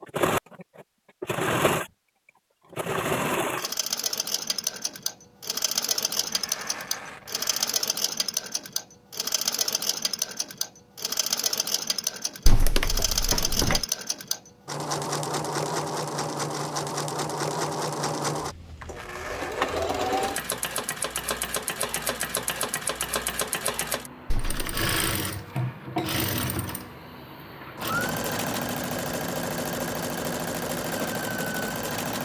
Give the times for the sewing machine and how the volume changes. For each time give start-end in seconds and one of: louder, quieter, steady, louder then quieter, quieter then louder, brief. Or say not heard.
0.0-32.1 steady.